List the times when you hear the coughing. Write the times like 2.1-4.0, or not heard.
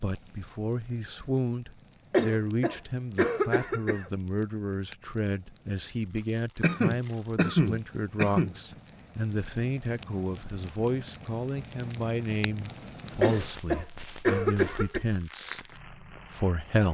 2.1-4.0, 6.6-8.6, 13.2-15.0.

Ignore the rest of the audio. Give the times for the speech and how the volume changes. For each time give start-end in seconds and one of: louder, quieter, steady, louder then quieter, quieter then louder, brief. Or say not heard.
0.0-16.8 steady.